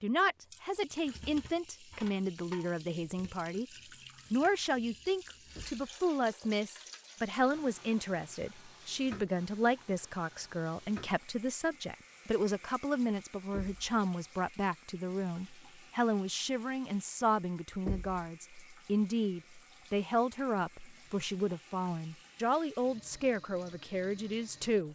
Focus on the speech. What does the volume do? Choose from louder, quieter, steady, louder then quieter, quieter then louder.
steady.